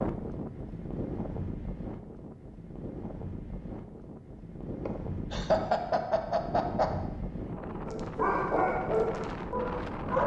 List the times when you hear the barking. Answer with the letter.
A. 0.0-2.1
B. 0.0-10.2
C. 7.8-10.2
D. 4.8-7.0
C.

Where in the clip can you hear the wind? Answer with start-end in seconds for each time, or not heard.
0.0-10.2.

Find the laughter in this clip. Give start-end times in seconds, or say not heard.
4.8-7.0.